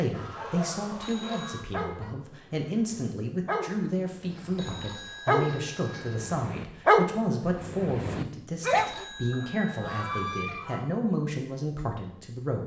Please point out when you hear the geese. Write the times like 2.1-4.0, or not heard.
0.1-2.1, 4.3-6.2, 9.3-10.8.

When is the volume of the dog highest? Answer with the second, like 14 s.
7 s.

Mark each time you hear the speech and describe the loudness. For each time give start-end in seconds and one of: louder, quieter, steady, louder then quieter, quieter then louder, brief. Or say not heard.
0.0-12.6 steady.